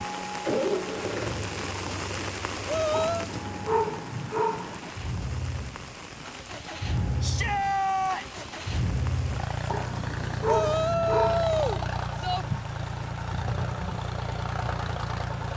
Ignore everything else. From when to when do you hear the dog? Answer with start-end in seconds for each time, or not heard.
2.9-5.0, 9.7-11.4.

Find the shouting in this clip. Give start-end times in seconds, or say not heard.
2.6-3.3, 7.2-8.4, 10.4-12.4.